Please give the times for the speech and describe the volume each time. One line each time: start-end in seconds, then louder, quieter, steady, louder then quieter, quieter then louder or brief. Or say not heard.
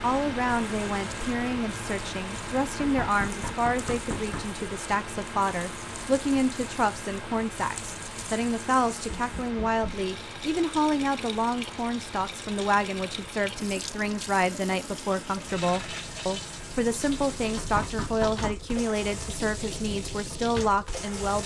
0.0-21.4 steady.